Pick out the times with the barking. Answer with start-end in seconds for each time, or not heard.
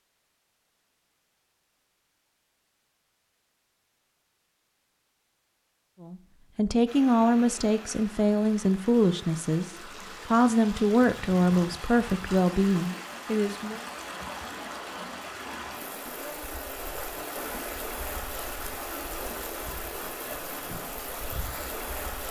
not heard.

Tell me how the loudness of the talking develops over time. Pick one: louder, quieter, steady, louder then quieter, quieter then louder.
steady.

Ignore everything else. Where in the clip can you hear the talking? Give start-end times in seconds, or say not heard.
6.0-13.8.